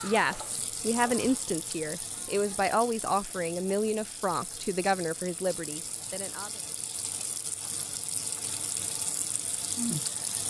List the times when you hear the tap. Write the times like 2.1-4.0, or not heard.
0.0-10.4.